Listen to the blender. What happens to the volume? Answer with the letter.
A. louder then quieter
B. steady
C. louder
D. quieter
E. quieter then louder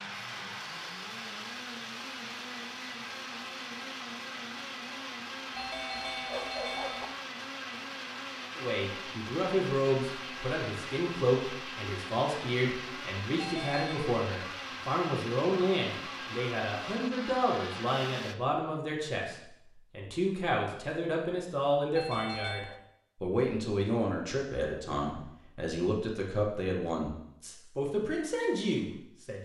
B.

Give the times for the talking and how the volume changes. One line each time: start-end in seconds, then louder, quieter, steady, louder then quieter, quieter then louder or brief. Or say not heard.
8.6-29.3 steady.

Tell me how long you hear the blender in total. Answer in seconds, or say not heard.
18 s.